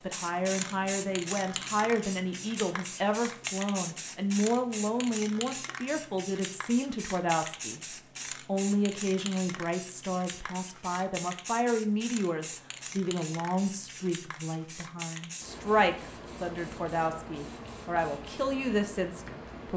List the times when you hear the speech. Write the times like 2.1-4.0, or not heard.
0.0-19.7.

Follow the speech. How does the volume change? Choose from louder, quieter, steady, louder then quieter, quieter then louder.
steady.